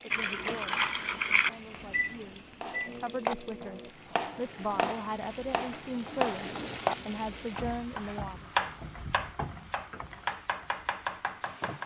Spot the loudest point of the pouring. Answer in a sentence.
The loudest moment of the pouring is at 1 second.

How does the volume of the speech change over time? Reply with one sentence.
The loudness of the speech goes up.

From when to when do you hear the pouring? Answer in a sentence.
You can hear the pouring from 0.1 to 1.5 s.